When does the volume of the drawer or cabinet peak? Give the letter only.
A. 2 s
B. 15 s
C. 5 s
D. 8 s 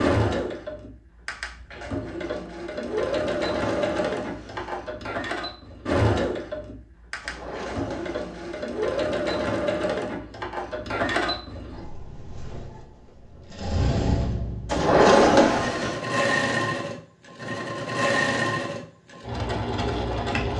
B.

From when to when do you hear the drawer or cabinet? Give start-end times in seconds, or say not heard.
3.5-4.8, 7.2-8.7, 14.7-16.0.